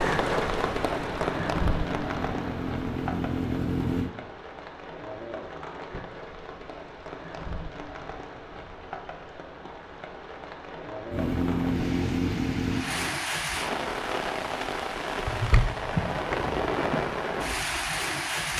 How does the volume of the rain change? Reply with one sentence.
The volume of the rain goes down, then up.